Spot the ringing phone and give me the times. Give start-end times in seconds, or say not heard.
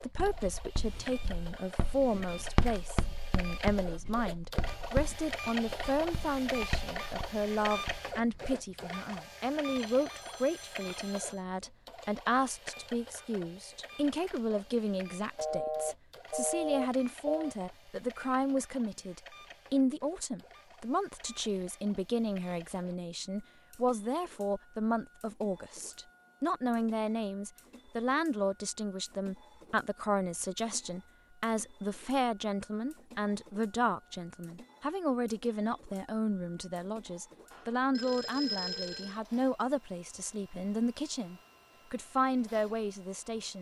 9.8-11.4, 15.3-17.6, 37.5-39.1.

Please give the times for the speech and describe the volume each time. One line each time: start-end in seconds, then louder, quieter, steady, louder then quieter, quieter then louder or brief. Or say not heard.
0.0-43.5 steady.